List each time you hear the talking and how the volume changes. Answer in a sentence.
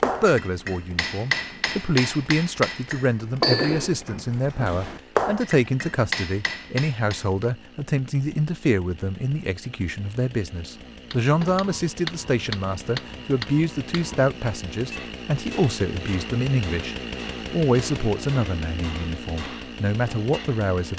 The talking can be heard from 0.0 to 20.9 s, at a steady volume.